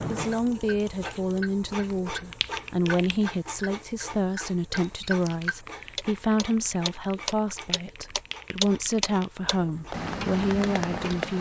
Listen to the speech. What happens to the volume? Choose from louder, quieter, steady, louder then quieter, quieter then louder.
steady.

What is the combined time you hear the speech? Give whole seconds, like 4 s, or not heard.
11 s.